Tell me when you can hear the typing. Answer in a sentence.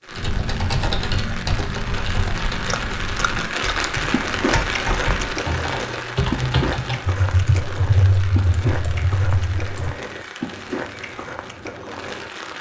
The typing can be heard from 0.1 to 9.9 s.